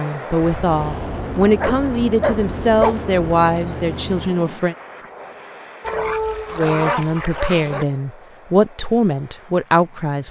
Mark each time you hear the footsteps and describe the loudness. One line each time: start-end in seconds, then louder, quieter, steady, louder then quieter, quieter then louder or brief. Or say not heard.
not heard.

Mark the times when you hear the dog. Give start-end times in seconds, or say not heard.
1.6-3.0, 5.8-7.8.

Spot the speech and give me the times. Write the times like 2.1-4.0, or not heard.
0.0-4.8, 6.5-10.2.